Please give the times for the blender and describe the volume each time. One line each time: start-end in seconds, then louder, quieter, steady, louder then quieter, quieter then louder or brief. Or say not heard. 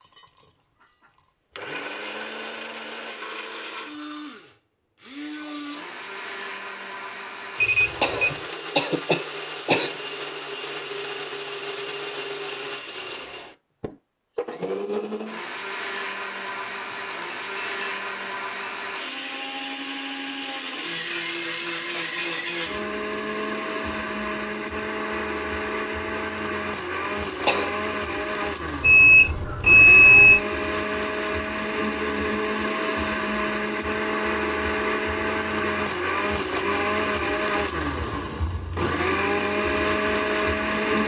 0.0-41.0 louder.